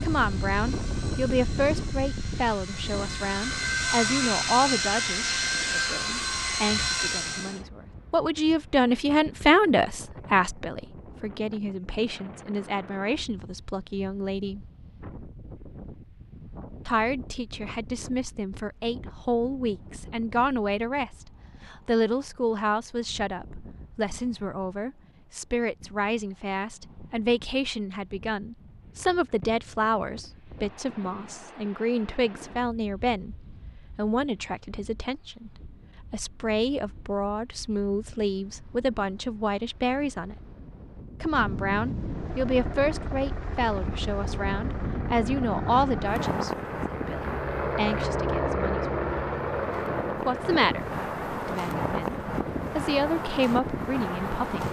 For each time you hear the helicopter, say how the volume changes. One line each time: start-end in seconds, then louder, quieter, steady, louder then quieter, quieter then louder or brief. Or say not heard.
0.0-7.6 louder
42.0-54.6 louder then quieter.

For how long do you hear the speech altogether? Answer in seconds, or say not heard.
50 s.